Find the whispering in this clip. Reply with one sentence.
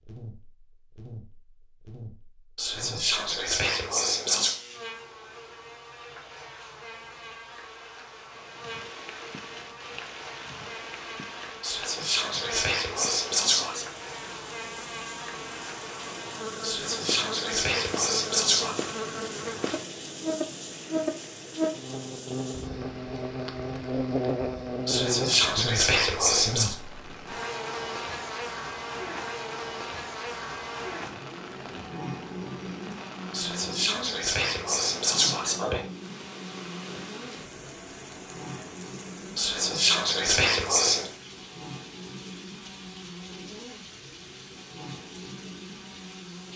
You can hear the whispering from 2.5 to 4.5 s, from 11.6 to 13.8 s, from 16.6 to 18.8 s, from 24.9 to 26.8 s, from 33.3 to 35.8 s and from 39.4 to 41.1 s.